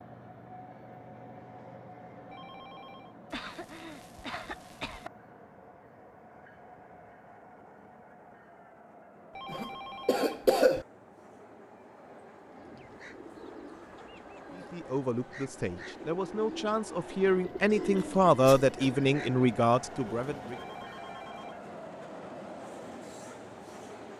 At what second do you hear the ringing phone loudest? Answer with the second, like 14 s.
10 s.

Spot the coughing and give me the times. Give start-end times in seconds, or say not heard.
3.3-5.1, 9.4-10.8, 17.8-18.9.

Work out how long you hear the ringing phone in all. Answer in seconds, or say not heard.
3 s.